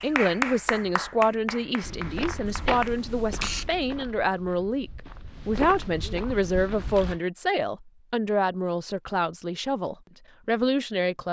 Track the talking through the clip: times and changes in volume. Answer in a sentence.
You can hear the talking from 0.0 to 11.2 s, at a steady volume.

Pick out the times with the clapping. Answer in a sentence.
The clapping can be heard from 0.0 to 3.0 s.